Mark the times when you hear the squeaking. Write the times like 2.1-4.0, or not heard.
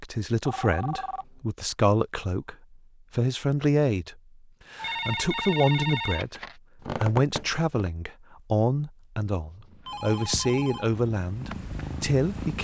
6.8-7.9.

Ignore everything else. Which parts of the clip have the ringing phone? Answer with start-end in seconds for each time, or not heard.
0.5-1.2, 4.8-6.5, 9.8-10.9.